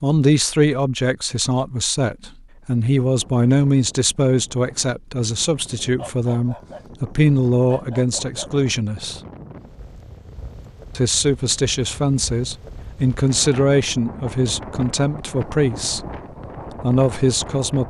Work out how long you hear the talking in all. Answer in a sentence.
You can hear the talking for 15 seconds altogether.